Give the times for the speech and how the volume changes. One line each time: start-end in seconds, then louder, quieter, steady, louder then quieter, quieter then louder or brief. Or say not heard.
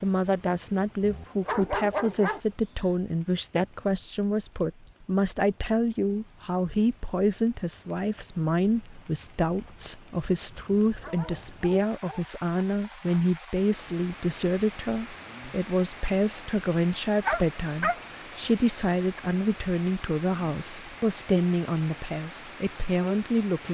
0.0-23.6 steady.